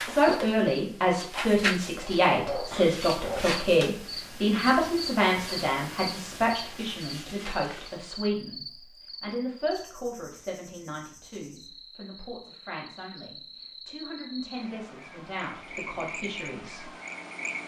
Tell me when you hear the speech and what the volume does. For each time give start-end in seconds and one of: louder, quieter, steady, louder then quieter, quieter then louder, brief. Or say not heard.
0.0-16.9 quieter.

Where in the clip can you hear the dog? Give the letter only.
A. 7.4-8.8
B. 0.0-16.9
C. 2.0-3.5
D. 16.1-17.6
C.